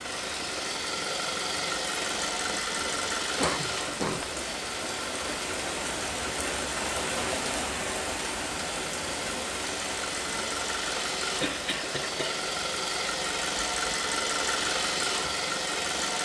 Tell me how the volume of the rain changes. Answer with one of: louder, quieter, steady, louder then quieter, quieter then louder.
louder then quieter.